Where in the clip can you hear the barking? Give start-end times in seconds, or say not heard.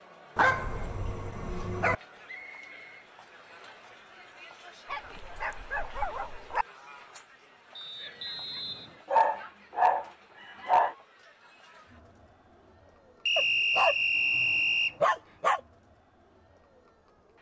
0.3-1.9, 4.9-6.7, 9.1-10.9, 13.3-15.6.